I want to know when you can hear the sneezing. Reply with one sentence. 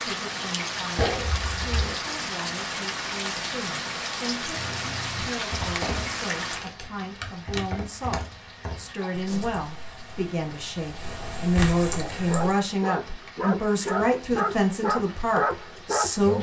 You can hear the sneezing from 0.9 to 1.9 s and from 9.0 to 9.6 s.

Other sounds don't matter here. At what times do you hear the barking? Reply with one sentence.
You can hear the barking from 12.1 to 16.3 s.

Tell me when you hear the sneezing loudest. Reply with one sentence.
The loudest moment of the sneezing is at 1 second.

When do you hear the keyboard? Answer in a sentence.
The keyboard can be heard from 4.5 to 12.6 s.